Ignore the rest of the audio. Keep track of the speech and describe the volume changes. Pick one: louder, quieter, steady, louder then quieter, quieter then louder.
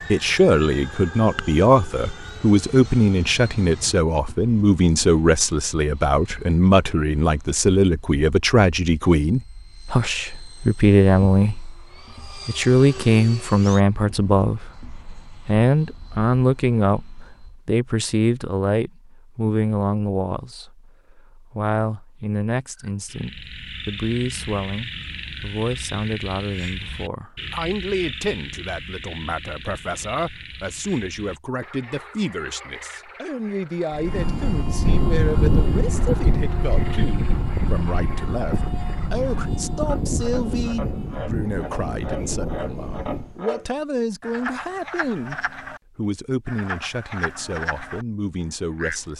quieter.